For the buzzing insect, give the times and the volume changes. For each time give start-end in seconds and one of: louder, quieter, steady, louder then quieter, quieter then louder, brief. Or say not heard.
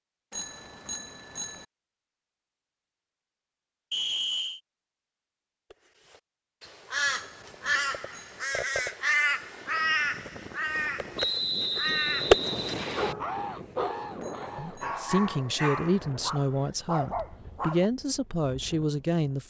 not heard.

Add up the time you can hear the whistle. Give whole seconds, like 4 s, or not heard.
3 s.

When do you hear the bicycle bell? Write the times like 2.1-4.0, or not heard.
0.3-1.6, 7.0-8.4, 14.2-14.9.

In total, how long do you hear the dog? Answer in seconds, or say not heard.
5 s.